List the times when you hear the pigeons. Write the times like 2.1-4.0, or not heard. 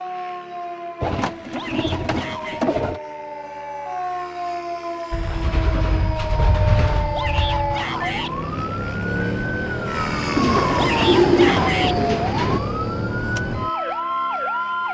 1.0-3.0, 5.1-7.8, 10.3-12.6.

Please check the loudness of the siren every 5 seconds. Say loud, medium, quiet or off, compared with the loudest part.
medium, loud, loud.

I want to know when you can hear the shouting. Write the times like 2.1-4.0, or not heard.
1.5-2.6, 7.1-8.3, 10.8-11.9.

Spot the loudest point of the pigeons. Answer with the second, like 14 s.
11 s.